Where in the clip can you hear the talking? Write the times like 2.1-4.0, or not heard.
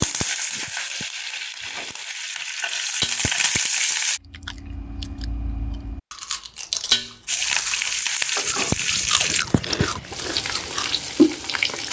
not heard.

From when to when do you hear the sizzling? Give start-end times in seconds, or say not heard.
0.0-4.2, 7.2-11.8.